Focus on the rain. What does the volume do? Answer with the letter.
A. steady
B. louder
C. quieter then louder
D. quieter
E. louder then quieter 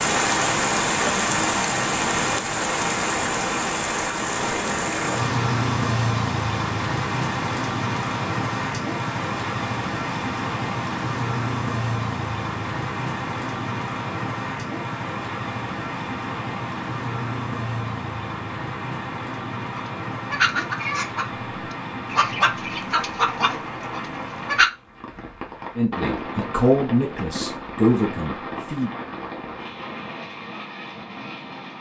D.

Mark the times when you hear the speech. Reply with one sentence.
The speech can be heard from 25.8 to 28.9 s.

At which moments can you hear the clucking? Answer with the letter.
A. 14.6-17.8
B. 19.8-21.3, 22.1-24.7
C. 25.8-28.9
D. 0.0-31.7
B.